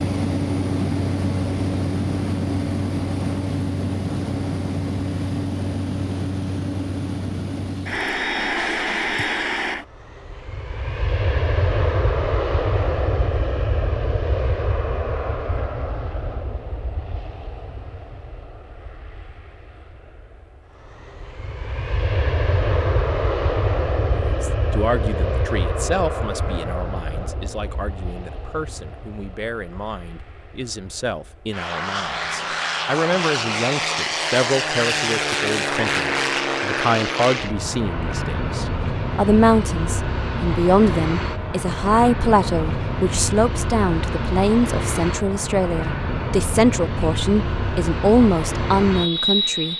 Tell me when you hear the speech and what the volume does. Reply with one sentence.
The speech can be heard from 24.1 to 49.7 s, getting louder.